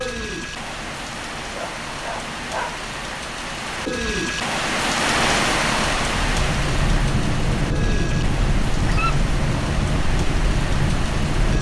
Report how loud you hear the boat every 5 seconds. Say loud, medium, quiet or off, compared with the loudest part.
quiet, loud, loud.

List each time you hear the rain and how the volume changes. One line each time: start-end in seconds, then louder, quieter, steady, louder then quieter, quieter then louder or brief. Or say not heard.
0.0-11.5 louder then quieter.